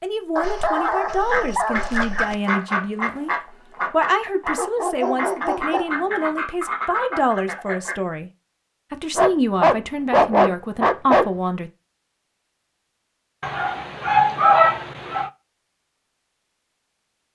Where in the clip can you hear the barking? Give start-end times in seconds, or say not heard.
0.3-2.4, 4.5-6.1, 9.2-11.2, 13.4-15.3.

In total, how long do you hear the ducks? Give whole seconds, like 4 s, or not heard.
7 s.